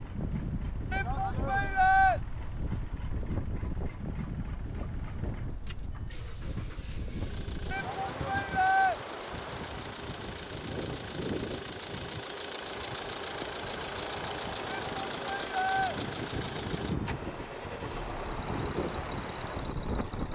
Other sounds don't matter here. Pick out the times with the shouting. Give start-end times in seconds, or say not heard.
0.9-2.2, 7.7-9.0, 14.7-15.9.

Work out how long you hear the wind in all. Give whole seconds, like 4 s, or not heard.
20 s.